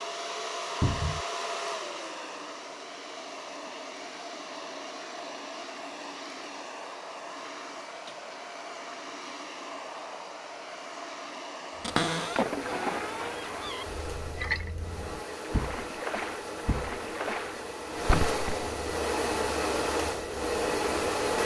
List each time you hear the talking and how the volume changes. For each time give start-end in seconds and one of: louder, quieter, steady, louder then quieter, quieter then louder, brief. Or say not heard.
not heard.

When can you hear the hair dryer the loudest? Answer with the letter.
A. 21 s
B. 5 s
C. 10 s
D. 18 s
A.